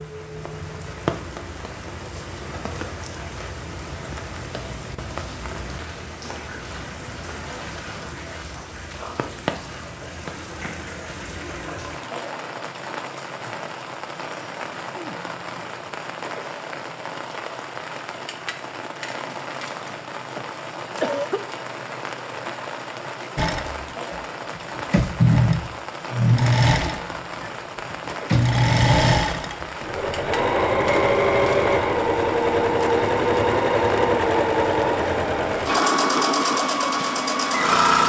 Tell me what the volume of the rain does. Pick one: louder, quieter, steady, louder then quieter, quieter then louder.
steady.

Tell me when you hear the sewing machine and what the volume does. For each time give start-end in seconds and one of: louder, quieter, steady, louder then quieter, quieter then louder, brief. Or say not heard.
23.4-38.0 steady.